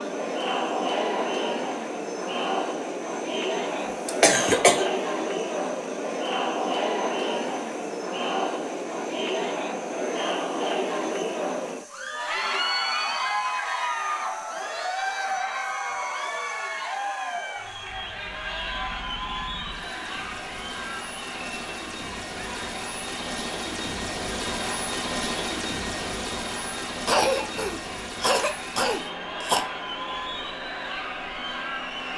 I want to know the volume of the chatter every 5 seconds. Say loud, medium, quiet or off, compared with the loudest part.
loud, loud, loud, loud, medium, medium, medium.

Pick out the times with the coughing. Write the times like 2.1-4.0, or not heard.
4.0-4.9, 27.1-29.6.